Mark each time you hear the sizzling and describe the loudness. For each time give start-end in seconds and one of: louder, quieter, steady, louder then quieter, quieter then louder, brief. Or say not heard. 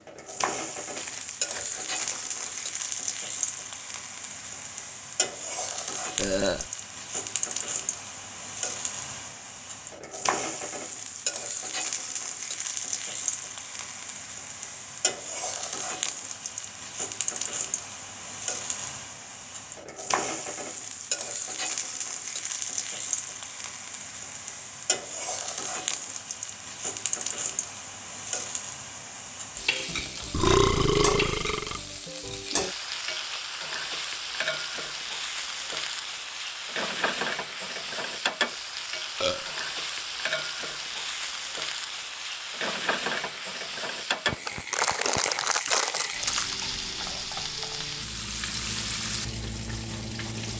0.1-50.5 steady.